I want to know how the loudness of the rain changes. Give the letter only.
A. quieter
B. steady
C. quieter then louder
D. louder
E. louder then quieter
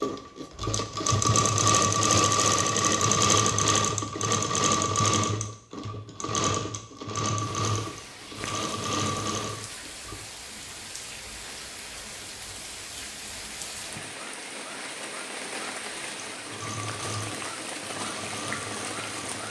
D.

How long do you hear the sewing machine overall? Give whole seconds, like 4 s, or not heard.
13 s.